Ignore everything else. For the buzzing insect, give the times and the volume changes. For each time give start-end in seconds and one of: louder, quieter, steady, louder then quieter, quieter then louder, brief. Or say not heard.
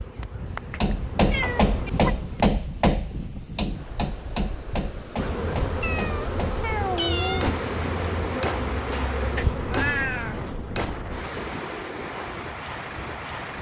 0.0-2.5 brief
5.2-11.6 quieter.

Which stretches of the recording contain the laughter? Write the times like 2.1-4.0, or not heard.
not heard.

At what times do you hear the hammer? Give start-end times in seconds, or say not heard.
0.7-11.1.